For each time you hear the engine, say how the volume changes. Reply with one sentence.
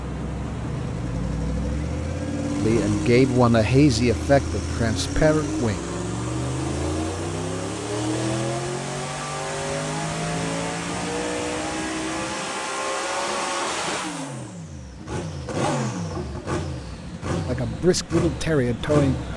You can hear the engine from 0.0 to 19.3 s, at a steady volume.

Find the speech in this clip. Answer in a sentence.
You can hear the speech from 2.5 to 5.8 s and from 17.4 to 19.3 s.